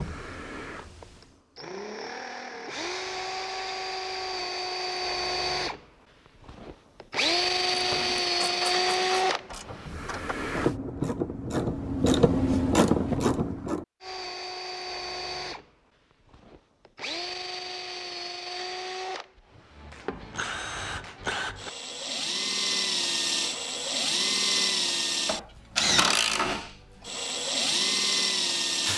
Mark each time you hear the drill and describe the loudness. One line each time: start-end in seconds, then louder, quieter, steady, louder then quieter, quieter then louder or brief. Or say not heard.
0.0-10.8 louder
14.0-28.9 louder.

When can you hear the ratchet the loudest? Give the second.
13 s.